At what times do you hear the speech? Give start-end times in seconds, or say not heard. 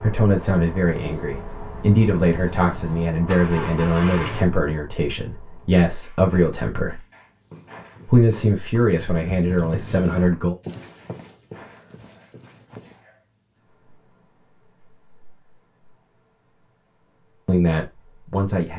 0.0-7.0, 8.1-10.6, 17.4-18.7.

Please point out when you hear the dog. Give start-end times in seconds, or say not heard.
not heard.